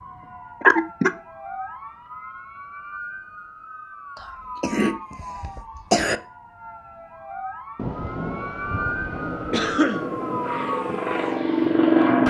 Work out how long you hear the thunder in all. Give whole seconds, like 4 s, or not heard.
2 s.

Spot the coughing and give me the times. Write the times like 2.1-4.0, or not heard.
0.6-1.1, 4.2-6.2, 9.5-10.1.